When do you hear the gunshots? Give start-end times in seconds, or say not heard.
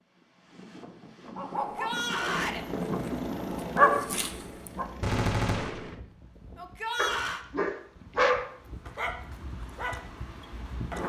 5.0-6.0.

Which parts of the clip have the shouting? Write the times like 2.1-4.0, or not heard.
1.6-2.6, 6.5-7.5.